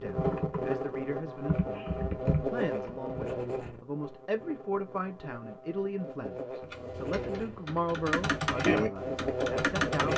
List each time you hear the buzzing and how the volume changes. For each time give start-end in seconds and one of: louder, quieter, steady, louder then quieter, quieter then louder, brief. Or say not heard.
0.0-10.1 quieter then louder.